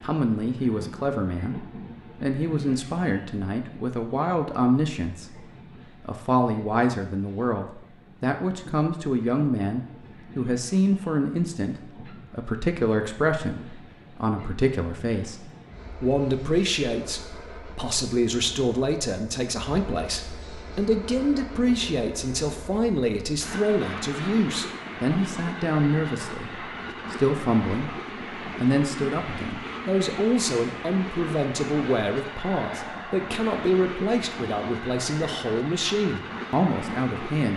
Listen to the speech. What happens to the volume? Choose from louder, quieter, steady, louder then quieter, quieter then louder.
steady.